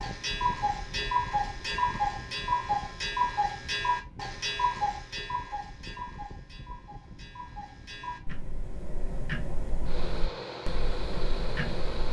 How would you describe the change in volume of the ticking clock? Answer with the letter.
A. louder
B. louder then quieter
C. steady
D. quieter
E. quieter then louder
D.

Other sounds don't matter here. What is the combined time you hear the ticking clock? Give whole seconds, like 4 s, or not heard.
12 s.